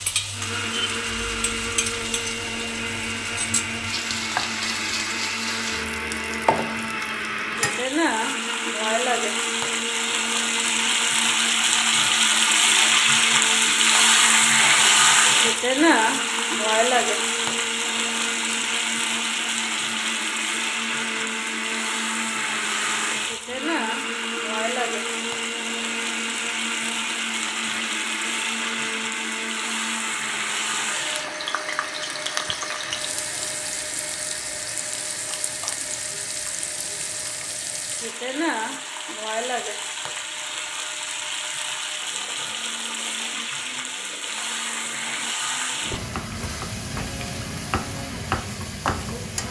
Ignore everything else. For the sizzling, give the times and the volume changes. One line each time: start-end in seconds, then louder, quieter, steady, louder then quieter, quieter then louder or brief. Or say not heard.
0.0-49.4 louder then quieter.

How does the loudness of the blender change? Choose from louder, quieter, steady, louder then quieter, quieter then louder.
quieter.